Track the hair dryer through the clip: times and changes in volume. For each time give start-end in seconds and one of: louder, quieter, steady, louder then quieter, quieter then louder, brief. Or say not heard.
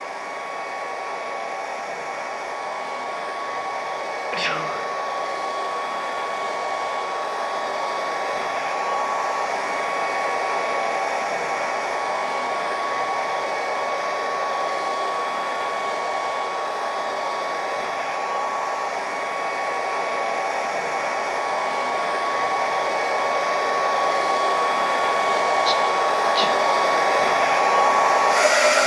0.0-28.8 louder.